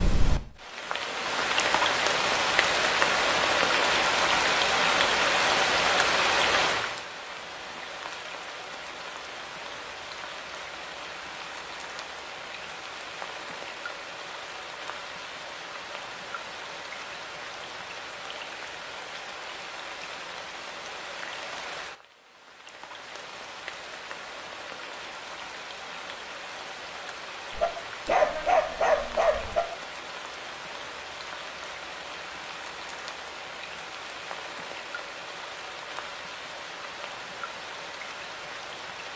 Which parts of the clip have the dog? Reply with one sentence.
You can hear the dog from 27.5 to 29.6 s.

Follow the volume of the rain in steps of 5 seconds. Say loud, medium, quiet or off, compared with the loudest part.
loud, loud, quiet, quiet, quiet, quiet, quiet, quiet.